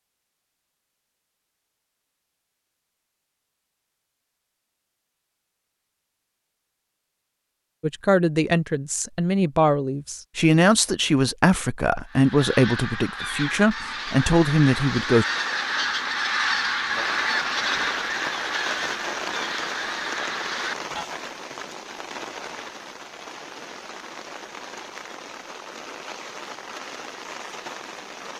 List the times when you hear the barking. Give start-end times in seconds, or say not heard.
not heard.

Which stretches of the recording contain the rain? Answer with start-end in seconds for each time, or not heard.
13.8-28.3.